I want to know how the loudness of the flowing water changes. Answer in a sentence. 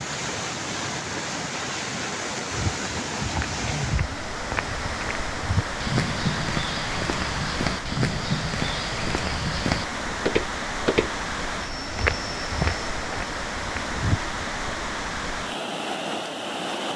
The volume of the flowing water stays about the same.